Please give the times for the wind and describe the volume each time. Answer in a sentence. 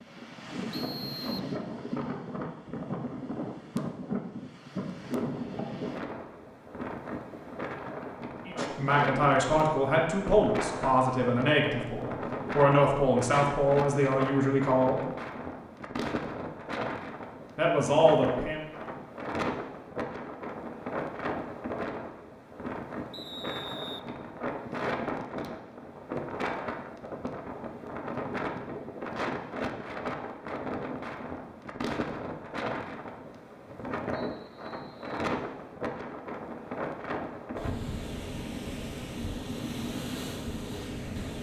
You can hear the wind from 0.0 to 41.3 s, at a steady volume.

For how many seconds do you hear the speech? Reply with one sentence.
The speech can be heard for 8 seconds in total.